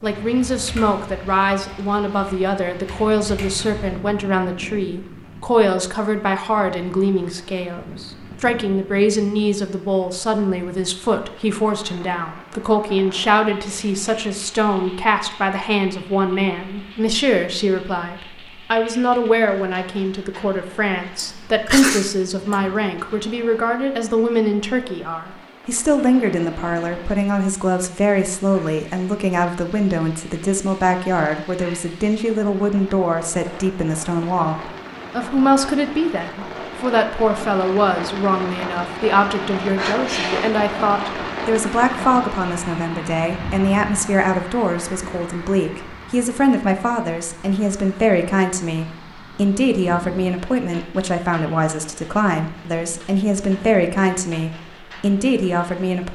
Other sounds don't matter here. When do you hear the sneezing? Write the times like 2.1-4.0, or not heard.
21.1-22.6, 39.8-40.6.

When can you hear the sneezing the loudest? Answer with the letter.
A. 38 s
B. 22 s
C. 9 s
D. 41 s
B.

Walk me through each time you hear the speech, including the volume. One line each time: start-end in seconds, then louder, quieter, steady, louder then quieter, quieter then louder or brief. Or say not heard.
0.0-56.0 steady.